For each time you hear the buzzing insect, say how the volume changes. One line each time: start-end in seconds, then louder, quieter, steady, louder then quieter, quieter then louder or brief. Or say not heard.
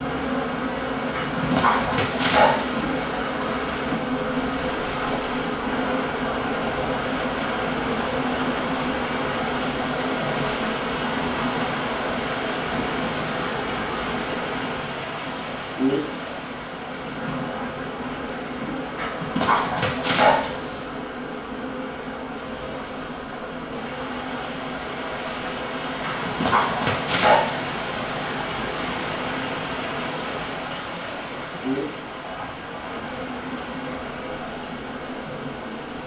0.0-36.0 quieter.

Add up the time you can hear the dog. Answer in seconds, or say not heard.
6 s.